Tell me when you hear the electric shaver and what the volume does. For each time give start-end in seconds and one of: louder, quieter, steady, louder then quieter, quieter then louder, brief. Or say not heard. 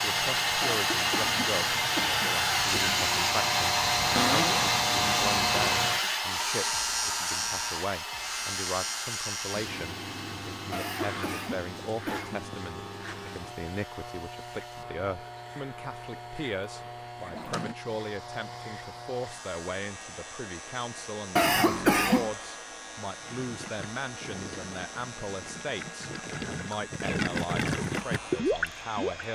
0.0-29.3 quieter.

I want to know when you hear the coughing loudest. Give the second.
22 s.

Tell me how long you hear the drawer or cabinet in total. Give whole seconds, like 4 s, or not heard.
2 s.